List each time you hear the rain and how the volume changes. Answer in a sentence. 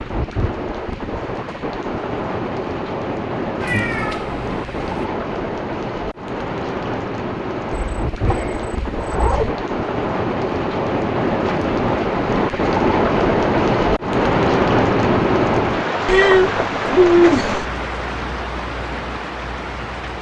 The rain can be heard from 0.0 to 20.1 s, getting louder then quieter.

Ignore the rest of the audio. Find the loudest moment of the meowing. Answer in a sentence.
The volume of the meowing peaks at 17 seconds.